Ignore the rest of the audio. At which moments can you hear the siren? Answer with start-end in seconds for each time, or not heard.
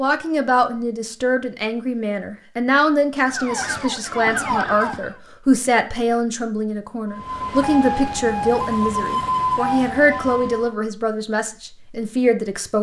3.2-5.2, 7.0-10.8.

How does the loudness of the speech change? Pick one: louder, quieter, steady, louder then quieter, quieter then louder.
steady.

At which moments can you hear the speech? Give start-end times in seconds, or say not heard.
0.0-12.7.